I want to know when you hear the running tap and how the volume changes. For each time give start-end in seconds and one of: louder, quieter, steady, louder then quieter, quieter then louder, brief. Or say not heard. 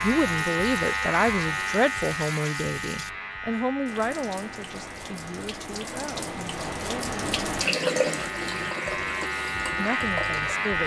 0.0-10.8 louder then quieter.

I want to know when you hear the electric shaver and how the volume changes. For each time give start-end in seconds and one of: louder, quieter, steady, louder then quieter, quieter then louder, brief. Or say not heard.
0.0-10.8 quieter then louder.